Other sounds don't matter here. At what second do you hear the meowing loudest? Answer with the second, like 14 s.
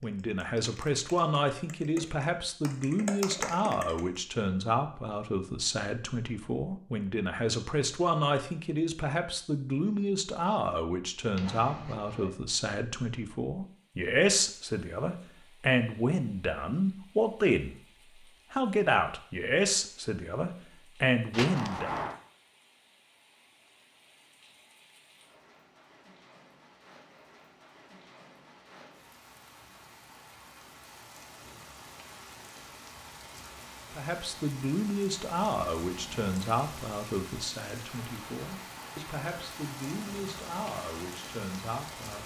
22 s.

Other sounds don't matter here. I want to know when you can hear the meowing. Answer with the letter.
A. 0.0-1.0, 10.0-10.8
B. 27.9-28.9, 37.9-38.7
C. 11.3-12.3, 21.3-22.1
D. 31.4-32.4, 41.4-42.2
C.